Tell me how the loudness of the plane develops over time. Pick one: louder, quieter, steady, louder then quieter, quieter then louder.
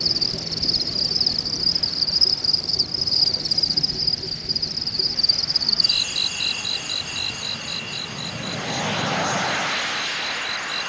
louder.